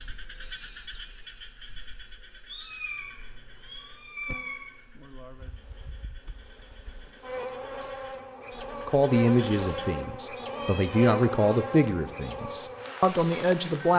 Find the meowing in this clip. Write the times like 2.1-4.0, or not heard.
2.5-4.7, 10.4-11.0.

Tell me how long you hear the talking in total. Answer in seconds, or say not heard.
5 s.